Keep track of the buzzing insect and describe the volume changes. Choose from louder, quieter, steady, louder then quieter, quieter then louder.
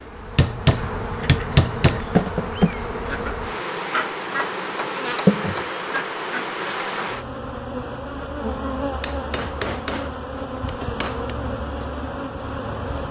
steady.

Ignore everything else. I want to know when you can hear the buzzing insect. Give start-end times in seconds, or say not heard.
0.0-13.0.